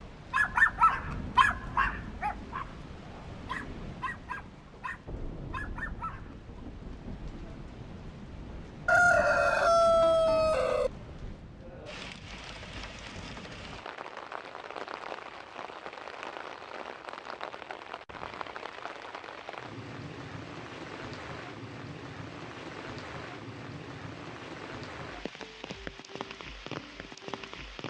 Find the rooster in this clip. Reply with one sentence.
You can hear the rooster from 8.8 to 10.9 s.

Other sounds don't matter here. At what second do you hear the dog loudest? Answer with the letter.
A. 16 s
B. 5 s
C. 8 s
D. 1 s
D.